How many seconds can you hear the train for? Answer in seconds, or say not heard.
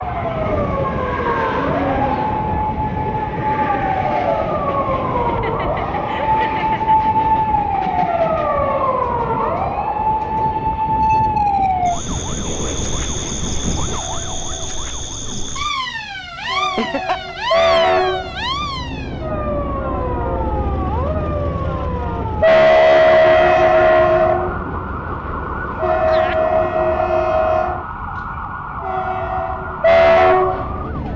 31 s.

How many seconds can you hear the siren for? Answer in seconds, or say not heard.
31 s.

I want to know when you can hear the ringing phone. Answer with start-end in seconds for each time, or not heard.
not heard.